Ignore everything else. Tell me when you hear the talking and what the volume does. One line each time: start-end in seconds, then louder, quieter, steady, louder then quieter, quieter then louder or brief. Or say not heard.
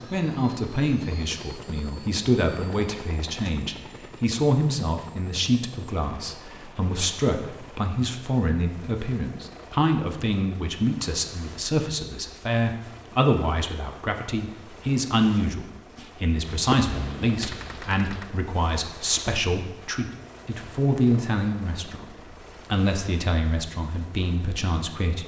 0.1-25.2 steady.